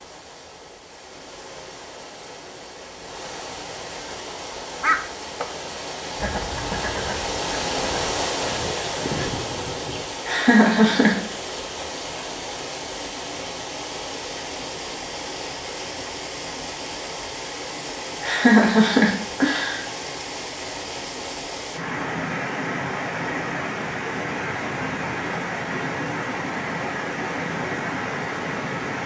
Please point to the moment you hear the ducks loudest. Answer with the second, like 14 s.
5 s.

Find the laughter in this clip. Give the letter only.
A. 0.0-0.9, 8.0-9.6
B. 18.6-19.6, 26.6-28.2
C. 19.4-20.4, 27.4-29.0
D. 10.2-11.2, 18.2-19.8
D.